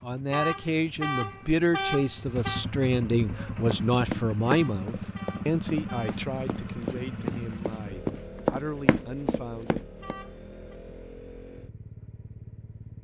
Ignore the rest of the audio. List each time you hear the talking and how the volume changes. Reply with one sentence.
The talking can be heard from 0.0 to 9.8 s, getting quieter.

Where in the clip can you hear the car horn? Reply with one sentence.
The car horn can be heard from 0.3 to 2.6 s, from 4.5 to 6.2 s and from 10.0 to 10.8 s.